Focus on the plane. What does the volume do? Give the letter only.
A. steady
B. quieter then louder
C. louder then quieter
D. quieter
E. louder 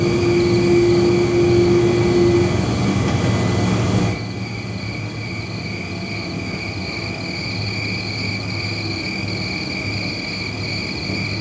D.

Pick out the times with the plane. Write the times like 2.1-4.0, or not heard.
0.0-11.3.